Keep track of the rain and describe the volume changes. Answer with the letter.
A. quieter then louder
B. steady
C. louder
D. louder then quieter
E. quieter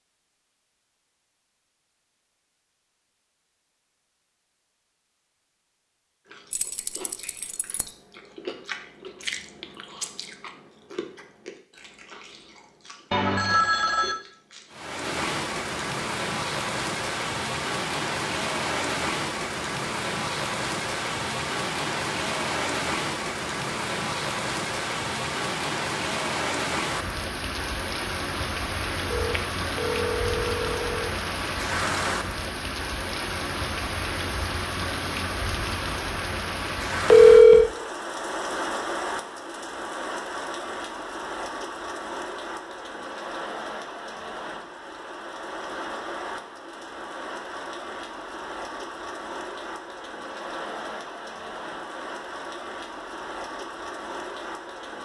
E.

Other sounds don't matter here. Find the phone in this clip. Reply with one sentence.
You can hear the phone from 13.1 to 14.2 s, from 29.1 to 31.1 s and from 37.0 to 37.7 s.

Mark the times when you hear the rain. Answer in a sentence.
You can hear the rain from 14.7 to 55.0 s.